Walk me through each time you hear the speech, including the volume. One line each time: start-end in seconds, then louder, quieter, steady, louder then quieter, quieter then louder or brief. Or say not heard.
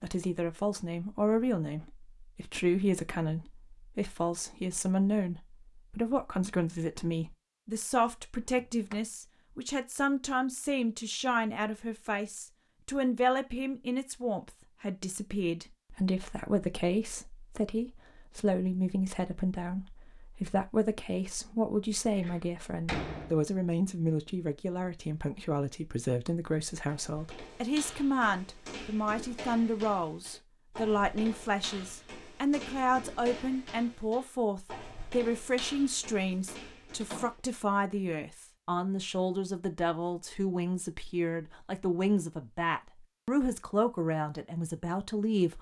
0.0-45.5 steady.